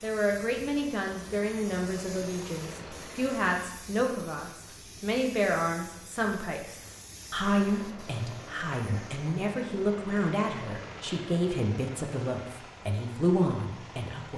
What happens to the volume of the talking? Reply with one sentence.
The volume of the talking stays about the same.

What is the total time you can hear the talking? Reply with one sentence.
You can hear the talking for 14 seconds altogether.